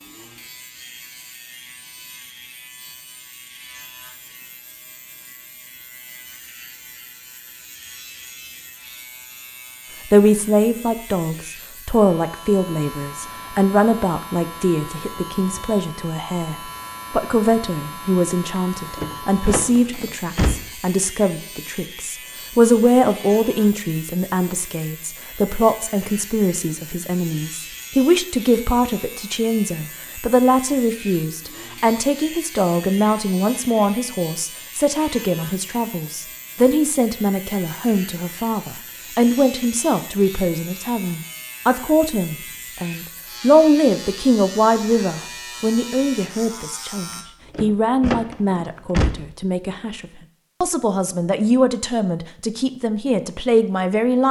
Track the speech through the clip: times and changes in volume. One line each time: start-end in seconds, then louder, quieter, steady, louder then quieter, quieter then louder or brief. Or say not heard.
10.1-54.2 steady.